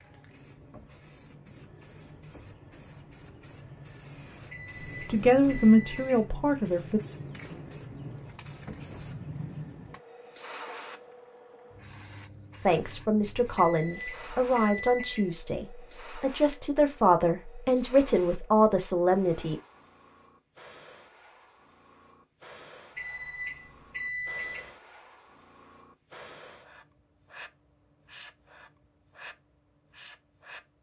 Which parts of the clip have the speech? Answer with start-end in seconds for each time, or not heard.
5.0-7.0, 12.7-19.6.